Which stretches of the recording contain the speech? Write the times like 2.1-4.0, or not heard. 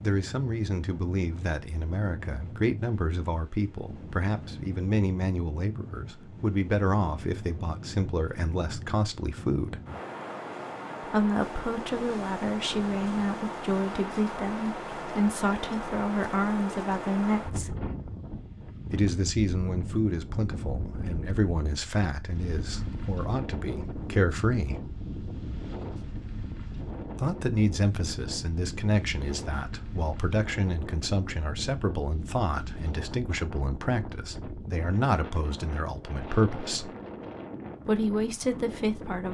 0.0-9.8, 11.1-17.8, 18.9-24.9, 27.1-36.9, 37.9-39.3.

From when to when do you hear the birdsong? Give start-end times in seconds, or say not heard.
not heard.